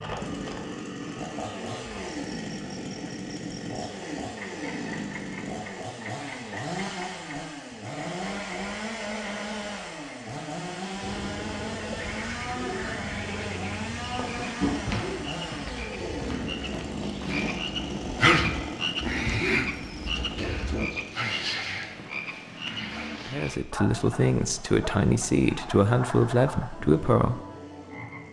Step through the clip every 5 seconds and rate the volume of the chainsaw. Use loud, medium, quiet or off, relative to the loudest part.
loud, loud, loud, loud, medium, quiet.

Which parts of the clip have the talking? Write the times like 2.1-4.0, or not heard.
23.3-27.4.